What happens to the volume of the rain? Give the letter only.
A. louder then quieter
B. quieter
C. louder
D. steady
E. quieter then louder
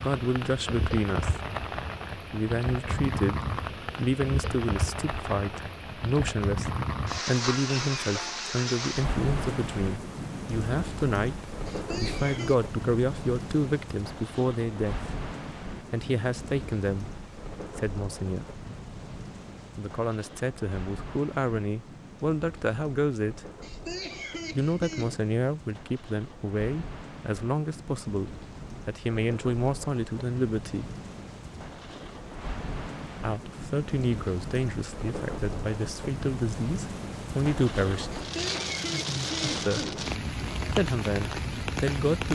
E.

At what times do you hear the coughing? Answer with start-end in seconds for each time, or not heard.
11.7-12.6, 23.6-25.2, 38.1-40.0.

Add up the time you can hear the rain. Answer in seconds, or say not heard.
42 s.